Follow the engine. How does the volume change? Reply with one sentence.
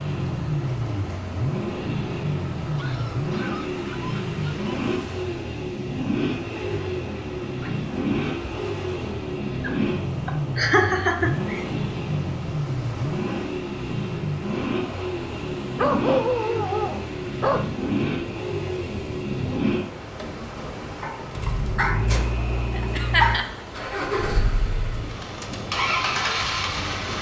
The volume of the engine stays about the same.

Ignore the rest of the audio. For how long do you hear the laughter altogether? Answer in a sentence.
The laughter can be heard for 2 seconds in total.